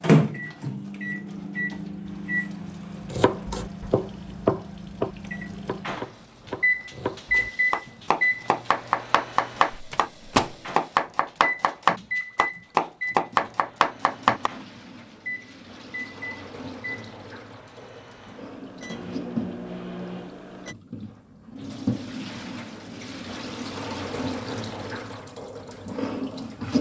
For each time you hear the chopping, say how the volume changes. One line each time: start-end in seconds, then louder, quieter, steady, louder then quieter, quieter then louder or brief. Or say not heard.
3.1-14.5 quieter then louder.